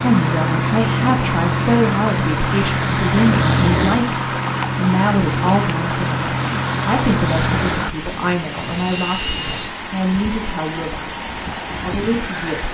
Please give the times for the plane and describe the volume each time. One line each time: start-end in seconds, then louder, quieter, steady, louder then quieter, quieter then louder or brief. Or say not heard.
0.0-12.7 quieter.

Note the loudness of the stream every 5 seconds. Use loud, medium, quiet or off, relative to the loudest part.
loud, loud, medium.